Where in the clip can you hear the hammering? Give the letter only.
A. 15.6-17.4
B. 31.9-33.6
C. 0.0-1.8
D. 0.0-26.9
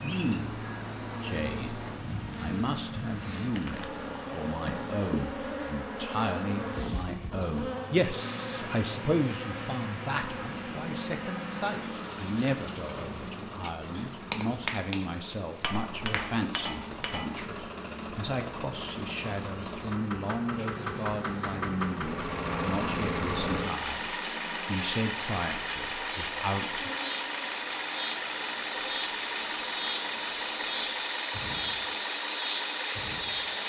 A.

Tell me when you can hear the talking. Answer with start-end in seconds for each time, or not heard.
0.0-26.9.